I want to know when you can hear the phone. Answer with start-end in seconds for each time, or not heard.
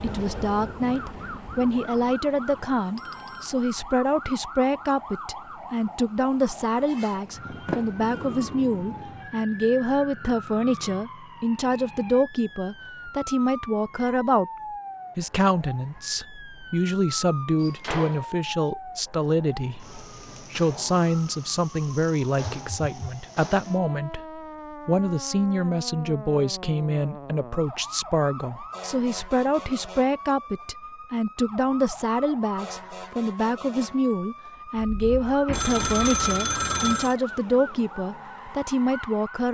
2.2-3.5, 22.4-23.1, 35.5-37.1.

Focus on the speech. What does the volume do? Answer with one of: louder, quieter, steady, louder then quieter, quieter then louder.
steady.